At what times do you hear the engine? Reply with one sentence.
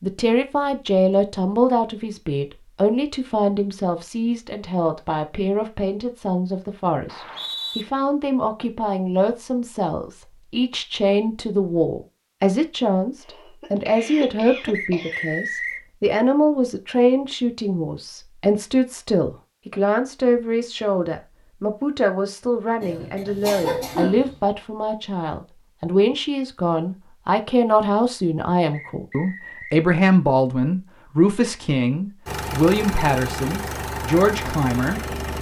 You can hear the engine from 32.2 to 35.3 s.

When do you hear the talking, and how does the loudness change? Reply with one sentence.
The talking can be heard from 0.0 to 35.0 s, at a steady volume.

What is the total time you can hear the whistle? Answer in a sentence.
You can hear the whistle for 3 seconds altogether.